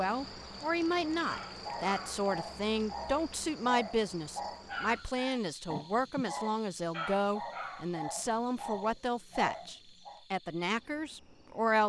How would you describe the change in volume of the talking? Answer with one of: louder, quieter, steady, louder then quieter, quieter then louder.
steady.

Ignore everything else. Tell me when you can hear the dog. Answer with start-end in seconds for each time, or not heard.
1.2-10.2.